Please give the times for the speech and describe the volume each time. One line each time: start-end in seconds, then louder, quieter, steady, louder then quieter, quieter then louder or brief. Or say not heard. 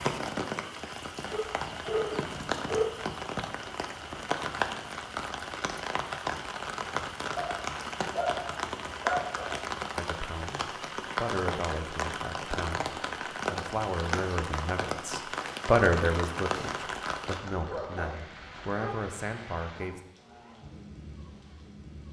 9.9-20.0 louder then quieter.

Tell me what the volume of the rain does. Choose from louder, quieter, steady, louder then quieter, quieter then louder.
quieter.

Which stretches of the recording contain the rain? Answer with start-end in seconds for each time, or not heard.
0.0-22.0.